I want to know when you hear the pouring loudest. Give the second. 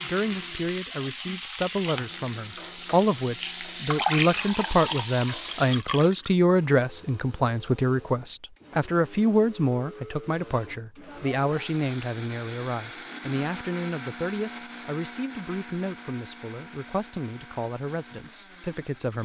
4 s.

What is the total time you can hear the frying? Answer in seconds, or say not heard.
6 s.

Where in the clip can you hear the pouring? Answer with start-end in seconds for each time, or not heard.
3.8-6.3.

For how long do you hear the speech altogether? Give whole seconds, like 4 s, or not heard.
19 s.